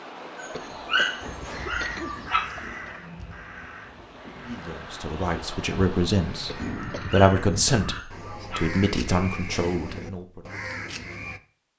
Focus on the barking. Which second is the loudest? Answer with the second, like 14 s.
1 s.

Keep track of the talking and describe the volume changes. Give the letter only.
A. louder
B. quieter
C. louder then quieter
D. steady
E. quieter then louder
C.